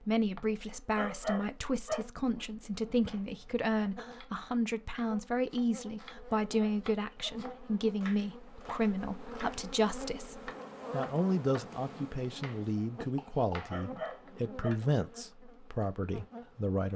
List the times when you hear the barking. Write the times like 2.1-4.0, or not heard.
0.9-2.0, 6.5-7.3, 13.7-14.8.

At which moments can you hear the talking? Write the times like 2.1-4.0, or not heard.
0.0-16.9.